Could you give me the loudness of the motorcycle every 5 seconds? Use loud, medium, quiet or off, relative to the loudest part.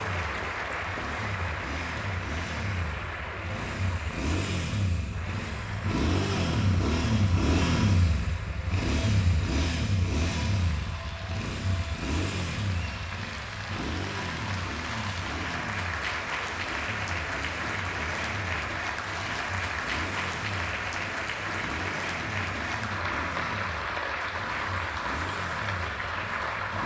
medium, loud, medium, quiet, quiet, quiet.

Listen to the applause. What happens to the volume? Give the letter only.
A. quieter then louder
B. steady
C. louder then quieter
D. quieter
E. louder
A.